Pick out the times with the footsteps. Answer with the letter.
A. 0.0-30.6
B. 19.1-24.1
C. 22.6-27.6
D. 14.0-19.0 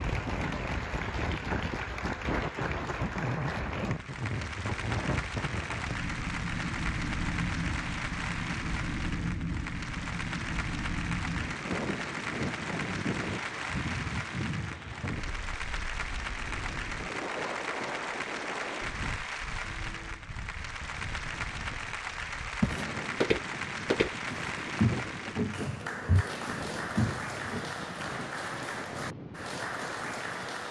C.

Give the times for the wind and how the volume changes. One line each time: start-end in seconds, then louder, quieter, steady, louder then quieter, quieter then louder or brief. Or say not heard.
0.0-30.6 quieter.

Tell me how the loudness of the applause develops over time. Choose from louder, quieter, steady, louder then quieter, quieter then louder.
steady.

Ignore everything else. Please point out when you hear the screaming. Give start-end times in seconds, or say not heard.
not heard.